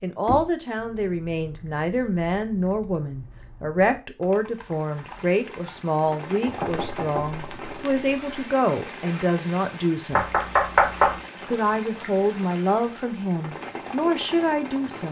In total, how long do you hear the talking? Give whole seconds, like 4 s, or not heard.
14 s.